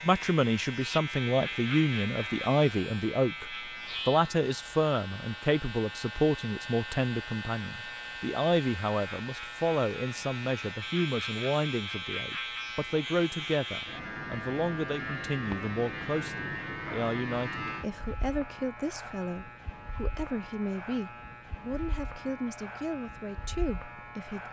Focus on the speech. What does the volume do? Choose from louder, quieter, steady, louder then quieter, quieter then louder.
quieter.